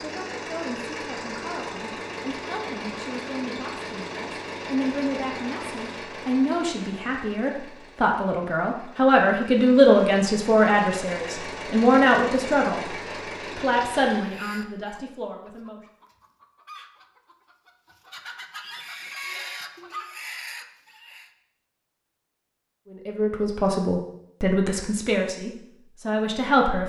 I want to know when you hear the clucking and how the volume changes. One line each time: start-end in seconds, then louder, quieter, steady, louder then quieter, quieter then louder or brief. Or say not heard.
14.2-21.3 louder.